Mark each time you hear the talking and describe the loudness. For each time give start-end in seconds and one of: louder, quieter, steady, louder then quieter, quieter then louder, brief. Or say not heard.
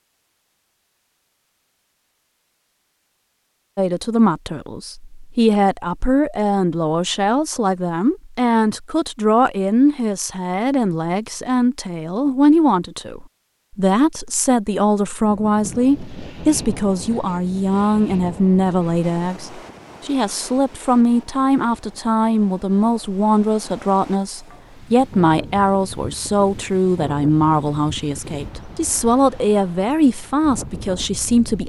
3.8-31.6 steady.